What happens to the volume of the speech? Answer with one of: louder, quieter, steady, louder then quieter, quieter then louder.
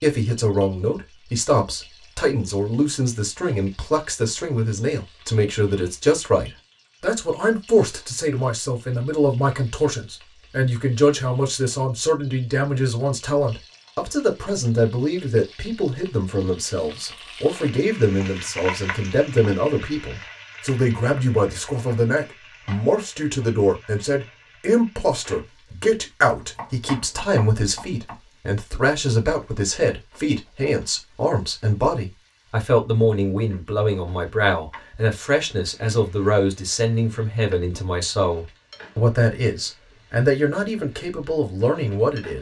steady.